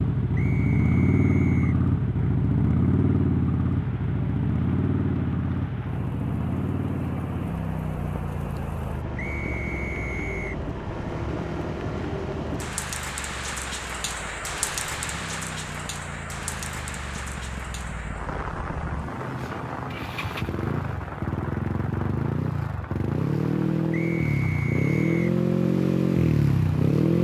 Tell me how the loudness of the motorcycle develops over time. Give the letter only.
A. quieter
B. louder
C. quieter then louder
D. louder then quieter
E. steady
C.